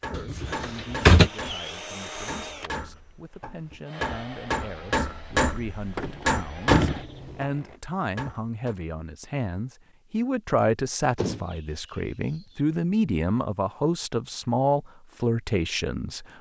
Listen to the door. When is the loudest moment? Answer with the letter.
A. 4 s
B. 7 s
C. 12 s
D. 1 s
D.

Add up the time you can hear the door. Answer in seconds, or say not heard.
3 s.